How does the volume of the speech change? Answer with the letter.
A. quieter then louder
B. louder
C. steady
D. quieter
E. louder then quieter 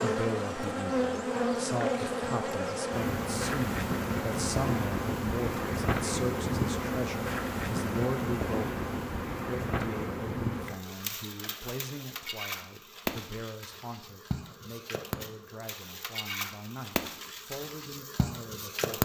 D.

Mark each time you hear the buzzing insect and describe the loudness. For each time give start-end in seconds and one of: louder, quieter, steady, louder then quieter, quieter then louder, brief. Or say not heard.
0.0-18.9 quieter.